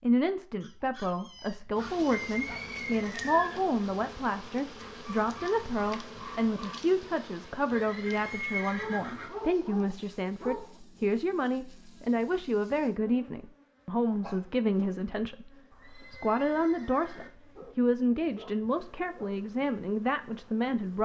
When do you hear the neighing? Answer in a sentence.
The neighing can be heard from 2.3 to 3.6 s, from 7.7 to 9.3 s and from 15.7 to 17.3 s.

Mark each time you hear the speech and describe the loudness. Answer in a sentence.
You can hear the speech from 0.0 to 20.9 s, at a steady volume.